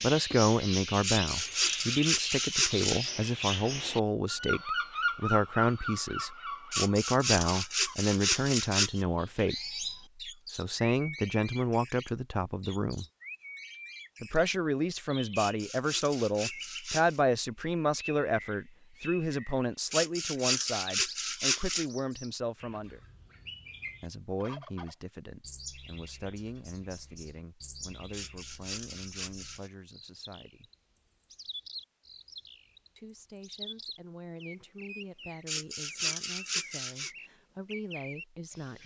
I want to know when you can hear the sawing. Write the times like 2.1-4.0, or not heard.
1.0-3.1, 6.7-9.0, 15.3-17.2, 19.9-21.9, 28.1-29.7, 35.5-37.1.